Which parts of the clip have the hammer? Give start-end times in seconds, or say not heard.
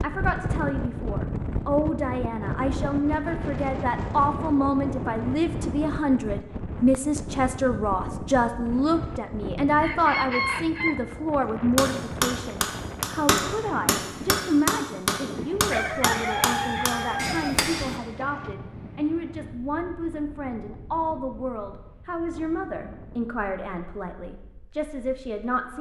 11.8-18.0.